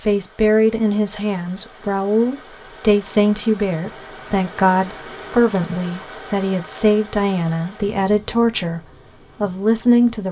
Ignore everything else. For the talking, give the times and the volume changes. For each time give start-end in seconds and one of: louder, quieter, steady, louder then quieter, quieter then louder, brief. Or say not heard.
0.0-10.2 steady.